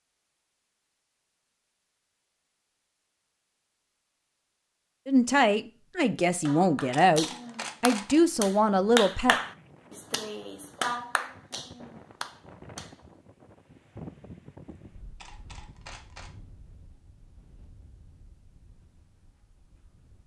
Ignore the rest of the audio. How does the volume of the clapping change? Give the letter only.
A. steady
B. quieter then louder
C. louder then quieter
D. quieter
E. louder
C.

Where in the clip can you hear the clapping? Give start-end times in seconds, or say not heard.
6.2-12.9.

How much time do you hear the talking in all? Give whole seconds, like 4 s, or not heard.
4 s.